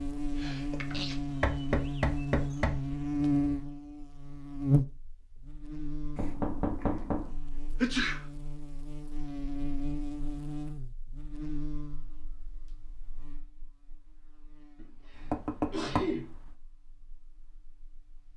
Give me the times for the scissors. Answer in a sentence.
The scissors can't be heard in this clip.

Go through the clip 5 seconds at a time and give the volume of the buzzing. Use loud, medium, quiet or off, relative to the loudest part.
loud, medium, quiet, quiet.